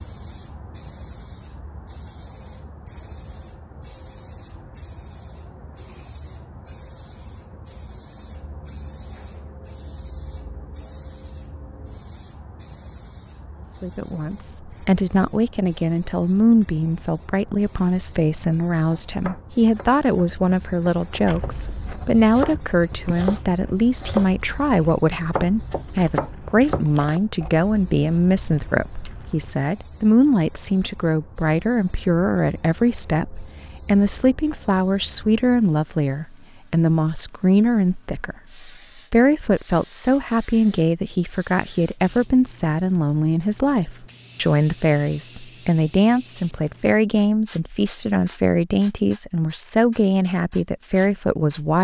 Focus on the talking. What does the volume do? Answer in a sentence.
The loudness of the talking stays about the same.